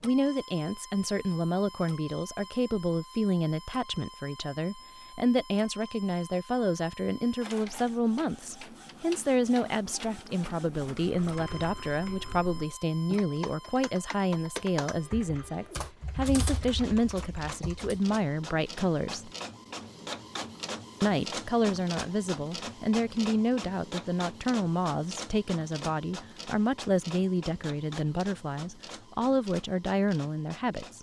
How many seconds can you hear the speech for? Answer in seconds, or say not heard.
29 s.